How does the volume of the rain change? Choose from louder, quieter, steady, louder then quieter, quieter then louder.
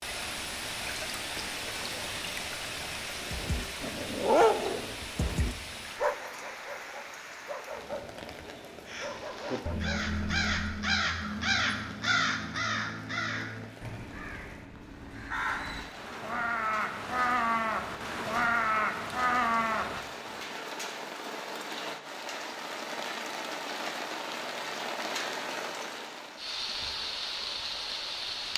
quieter then louder.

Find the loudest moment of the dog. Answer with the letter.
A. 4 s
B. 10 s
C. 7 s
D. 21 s
A.